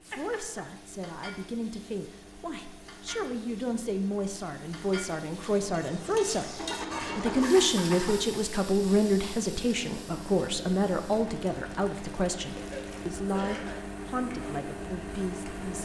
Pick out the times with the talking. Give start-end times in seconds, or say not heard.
0.0-15.8.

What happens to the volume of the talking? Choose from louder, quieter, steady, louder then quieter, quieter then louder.
louder then quieter.